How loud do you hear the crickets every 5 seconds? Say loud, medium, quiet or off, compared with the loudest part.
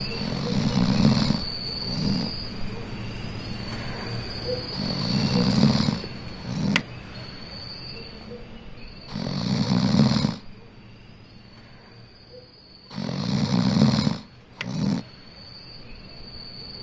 loud, loud, quiet, medium.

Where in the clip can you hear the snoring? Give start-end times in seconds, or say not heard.
0.1-2.3, 4.7-6.8, 9.1-10.4, 12.9-15.1.